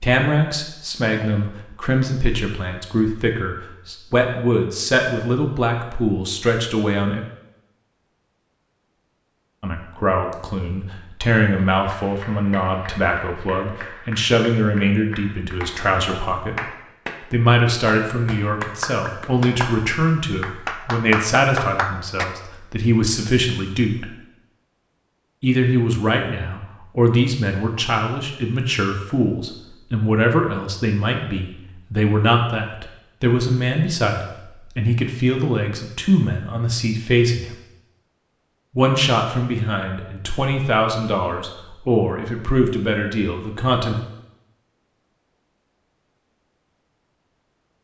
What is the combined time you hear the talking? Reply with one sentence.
The talking can be heard for 39 seconds in total.